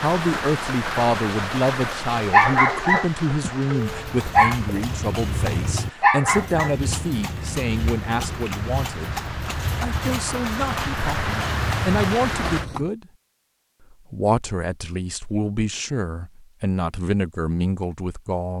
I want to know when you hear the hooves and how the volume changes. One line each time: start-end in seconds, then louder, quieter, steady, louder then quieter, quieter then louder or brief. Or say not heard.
3.8-12.9 steady.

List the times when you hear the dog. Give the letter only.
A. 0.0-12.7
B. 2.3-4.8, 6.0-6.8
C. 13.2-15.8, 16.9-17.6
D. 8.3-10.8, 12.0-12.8
B.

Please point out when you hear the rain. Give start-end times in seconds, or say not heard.
0.0-12.7.